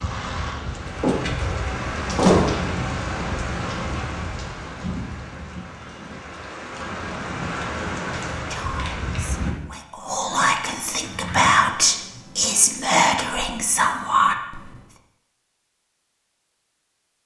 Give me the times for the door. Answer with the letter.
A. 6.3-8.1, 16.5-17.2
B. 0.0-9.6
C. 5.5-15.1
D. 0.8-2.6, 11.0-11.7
D.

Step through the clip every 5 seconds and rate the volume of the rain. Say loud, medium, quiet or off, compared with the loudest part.
loud, loud, off, off.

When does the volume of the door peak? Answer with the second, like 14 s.
2 s.